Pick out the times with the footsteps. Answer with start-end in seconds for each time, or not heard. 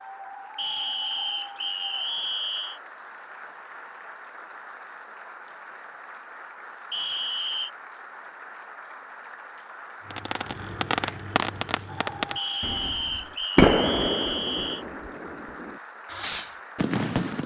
not heard.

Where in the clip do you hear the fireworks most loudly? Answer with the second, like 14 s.
14 s.